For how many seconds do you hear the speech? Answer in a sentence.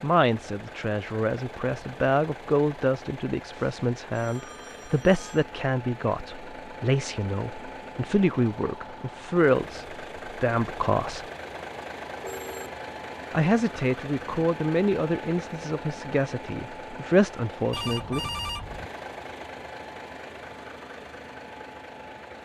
You can hear the speech for 16 seconds altogether.